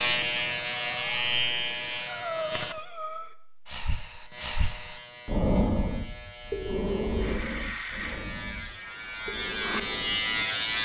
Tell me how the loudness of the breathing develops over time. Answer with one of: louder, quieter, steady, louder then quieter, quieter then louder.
louder then quieter.